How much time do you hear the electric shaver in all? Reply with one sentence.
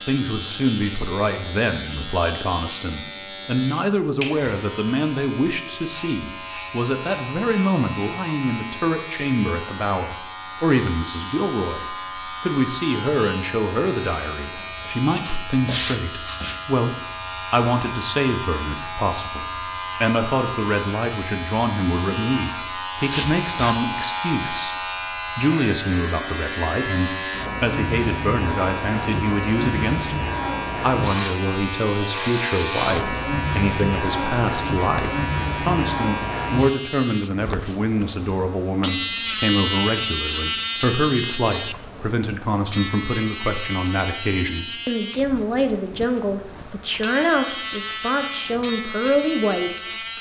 The electric shaver can be heard for 50 seconds in total.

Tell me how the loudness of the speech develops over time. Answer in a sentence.
The loudness of the speech stays about the same.